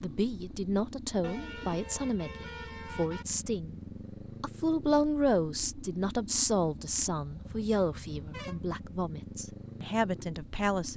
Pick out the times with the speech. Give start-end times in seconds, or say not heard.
0.0-3.8, 4.4-10.9.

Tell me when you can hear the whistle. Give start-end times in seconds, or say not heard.
not heard.